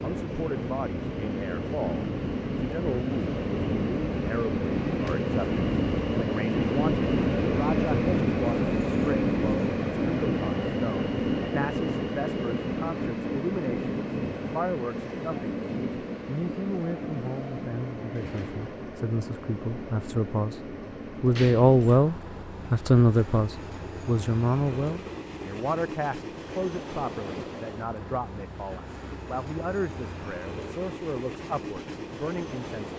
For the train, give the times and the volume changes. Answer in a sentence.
You can hear the train from 0.0 to 32.9 s, getting quieter.